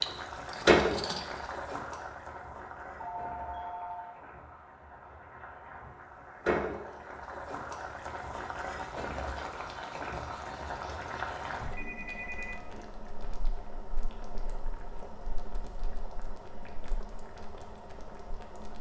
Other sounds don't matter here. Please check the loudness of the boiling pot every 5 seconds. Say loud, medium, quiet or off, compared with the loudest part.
loud, medium, medium, quiet.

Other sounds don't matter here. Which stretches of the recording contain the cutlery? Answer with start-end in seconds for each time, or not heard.
0.0-1.4.